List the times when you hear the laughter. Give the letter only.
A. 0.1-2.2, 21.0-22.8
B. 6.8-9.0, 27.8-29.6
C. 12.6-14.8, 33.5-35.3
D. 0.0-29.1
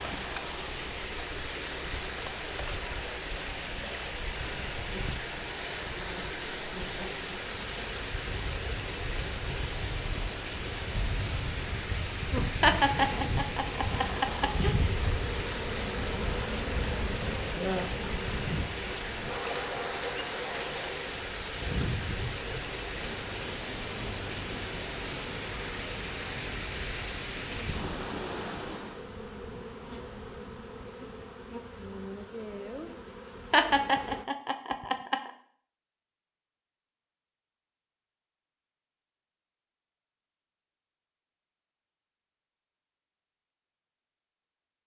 C.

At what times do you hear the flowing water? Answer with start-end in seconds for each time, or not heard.
0.0-29.1.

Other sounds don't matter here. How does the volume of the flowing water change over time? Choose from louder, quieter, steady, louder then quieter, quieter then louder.
steady.